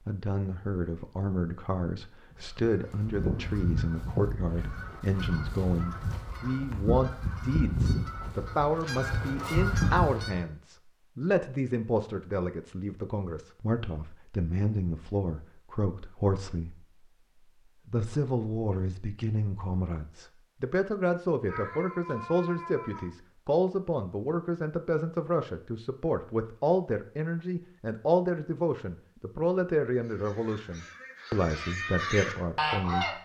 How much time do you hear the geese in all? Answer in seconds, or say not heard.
11 s.